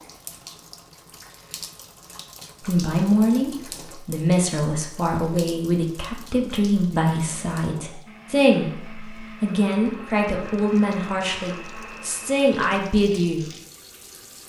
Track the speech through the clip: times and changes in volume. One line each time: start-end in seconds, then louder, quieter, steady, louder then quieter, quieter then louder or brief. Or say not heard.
2.6-13.5 steady.